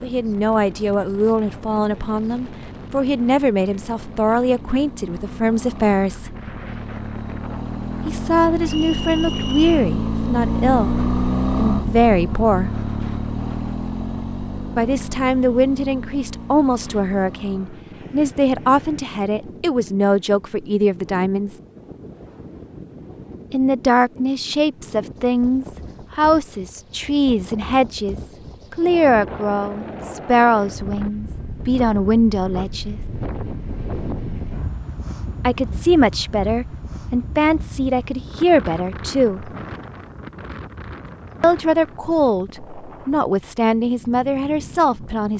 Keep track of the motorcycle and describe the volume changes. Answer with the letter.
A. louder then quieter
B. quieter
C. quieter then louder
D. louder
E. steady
A.